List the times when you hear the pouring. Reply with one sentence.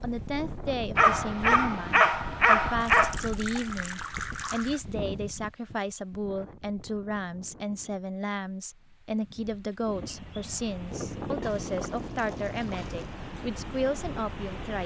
You can hear the pouring from 2.9 to 4.8 s and from 11.4 to 13.2 s.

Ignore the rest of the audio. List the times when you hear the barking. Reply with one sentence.
The barking can be heard from 0.9 to 3.1 s.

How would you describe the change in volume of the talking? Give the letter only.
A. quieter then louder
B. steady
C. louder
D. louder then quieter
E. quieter
B.